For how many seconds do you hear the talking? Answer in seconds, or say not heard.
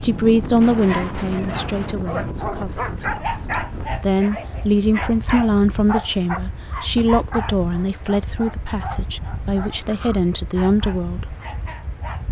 11 s.